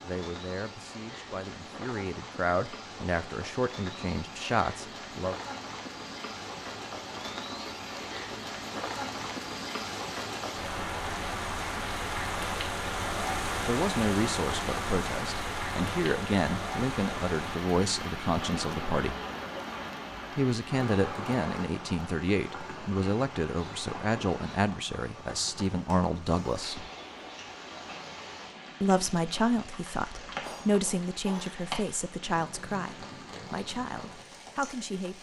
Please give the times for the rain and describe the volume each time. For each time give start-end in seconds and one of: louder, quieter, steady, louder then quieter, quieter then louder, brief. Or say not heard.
0.0-35.1 louder then quieter.